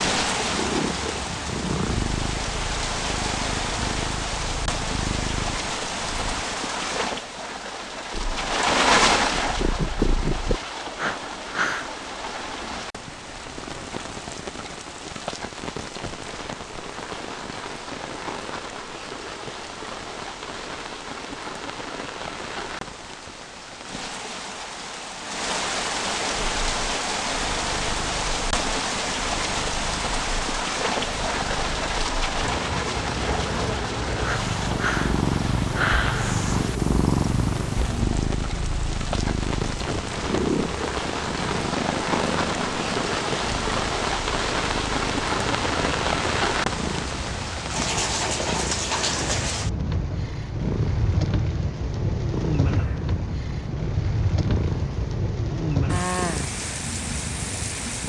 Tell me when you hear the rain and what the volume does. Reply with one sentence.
You can hear the rain from 0.0 to 58.0 s, getting quieter then louder.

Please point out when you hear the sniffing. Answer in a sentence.
The sniffing can be heard from 10.9 to 11.9 s, from 34.2 to 35.1 s and from 35.8 to 36.4 s.